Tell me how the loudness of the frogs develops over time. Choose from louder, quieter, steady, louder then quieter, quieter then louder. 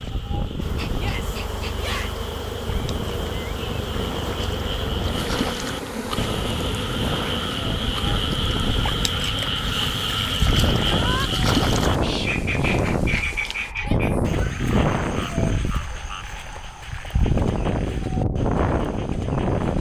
louder then quieter.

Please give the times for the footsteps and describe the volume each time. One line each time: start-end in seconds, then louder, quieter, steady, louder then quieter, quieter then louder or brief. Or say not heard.
not heard.